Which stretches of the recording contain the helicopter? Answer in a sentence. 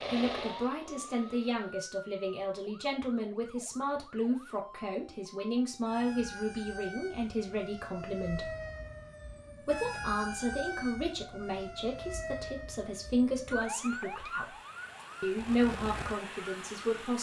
You can hear the helicopter from 0.0 to 1.6 s.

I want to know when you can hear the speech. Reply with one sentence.
You can hear the speech from 0.1 to 8.5 s, from 9.6 to 14.6 s and from 15.2 to 17.1 s.